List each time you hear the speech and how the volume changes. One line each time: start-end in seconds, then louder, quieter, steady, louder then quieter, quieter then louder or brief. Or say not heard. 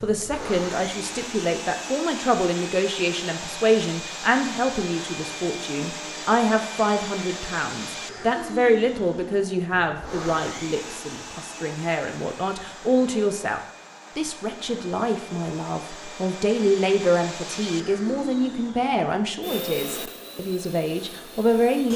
0.0-21.9 steady.